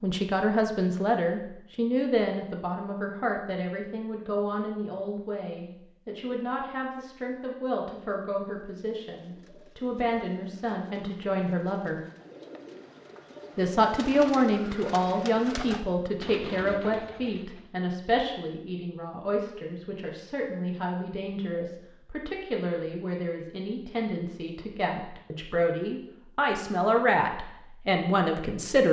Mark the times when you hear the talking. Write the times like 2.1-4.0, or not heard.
0.0-12.0, 13.6-28.8.